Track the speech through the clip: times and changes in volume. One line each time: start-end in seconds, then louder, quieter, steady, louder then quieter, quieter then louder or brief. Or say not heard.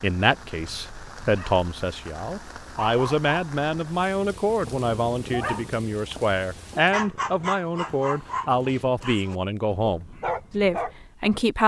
0.0-11.6 steady.